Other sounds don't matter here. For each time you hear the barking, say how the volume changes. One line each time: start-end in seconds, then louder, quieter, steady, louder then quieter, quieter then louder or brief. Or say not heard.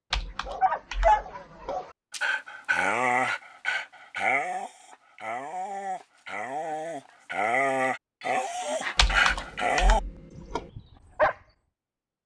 0.5-11.3 quieter then louder.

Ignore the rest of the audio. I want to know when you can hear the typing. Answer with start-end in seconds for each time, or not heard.
0.1-1.8, 8.9-10.7.